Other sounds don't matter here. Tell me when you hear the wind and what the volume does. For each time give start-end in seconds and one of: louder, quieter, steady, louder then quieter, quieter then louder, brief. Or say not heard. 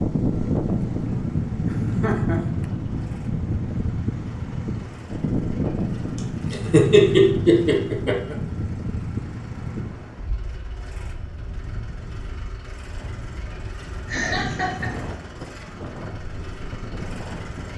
0.0-17.7 quieter then louder.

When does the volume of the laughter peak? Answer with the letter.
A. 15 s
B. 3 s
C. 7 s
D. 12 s
C.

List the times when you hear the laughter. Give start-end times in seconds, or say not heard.
1.6-2.6, 6.5-8.3, 14.1-14.9.